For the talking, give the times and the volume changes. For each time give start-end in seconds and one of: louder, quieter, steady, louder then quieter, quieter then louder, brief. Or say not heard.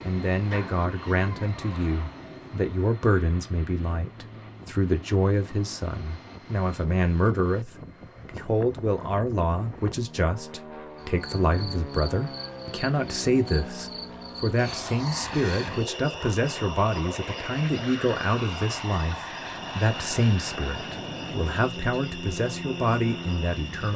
0.0-23.9 steady.